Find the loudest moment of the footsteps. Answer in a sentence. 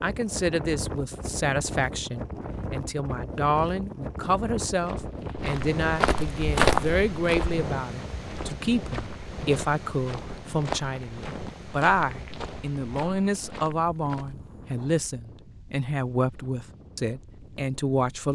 The volume of the footsteps peaks at 7 seconds.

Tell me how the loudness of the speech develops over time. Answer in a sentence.
The volume of the speech stays about the same.